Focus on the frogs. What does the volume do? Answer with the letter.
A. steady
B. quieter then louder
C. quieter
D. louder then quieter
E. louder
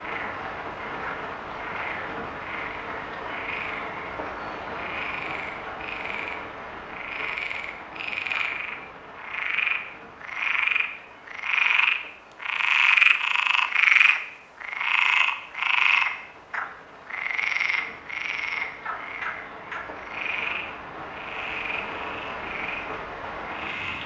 D.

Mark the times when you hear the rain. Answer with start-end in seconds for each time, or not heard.
0.0-24.0.